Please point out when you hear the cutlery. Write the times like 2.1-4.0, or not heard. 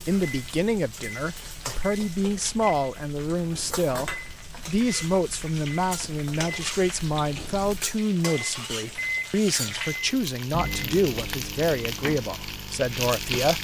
not heard.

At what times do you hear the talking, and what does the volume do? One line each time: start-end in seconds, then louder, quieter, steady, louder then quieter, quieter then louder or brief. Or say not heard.
0.1-13.6 steady.